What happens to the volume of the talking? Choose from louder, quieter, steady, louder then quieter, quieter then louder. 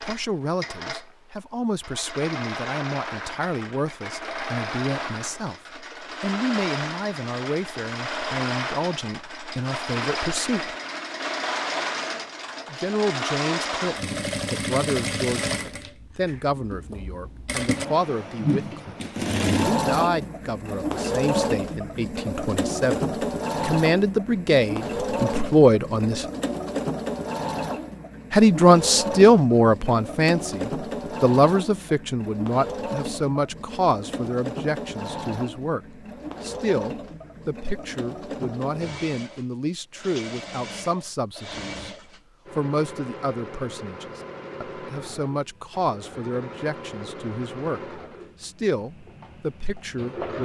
louder then quieter.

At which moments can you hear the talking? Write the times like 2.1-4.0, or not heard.
0.0-10.8, 12.7-26.2, 28.3-42.0, 42.5-50.3.